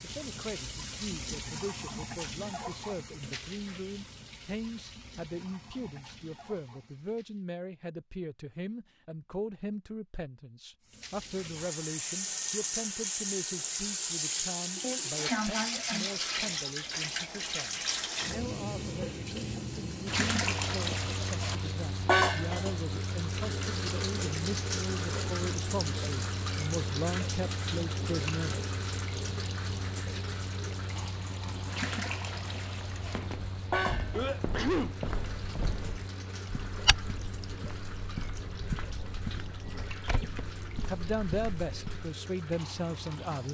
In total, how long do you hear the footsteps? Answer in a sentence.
You can hear the footsteps for 9 seconds altogether.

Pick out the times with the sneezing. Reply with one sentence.
The sneezing can be heard from 14.8 to 16.1 s and from 34.1 to 35.0 s.